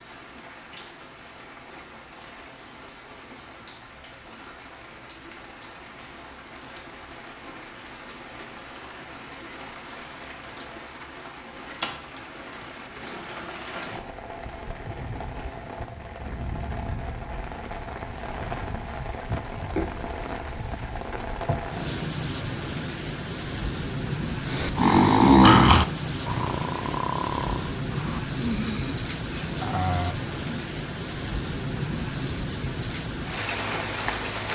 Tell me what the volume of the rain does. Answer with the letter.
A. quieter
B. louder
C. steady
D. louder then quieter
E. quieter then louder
B.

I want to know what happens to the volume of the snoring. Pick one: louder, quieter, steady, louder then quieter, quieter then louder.
quieter.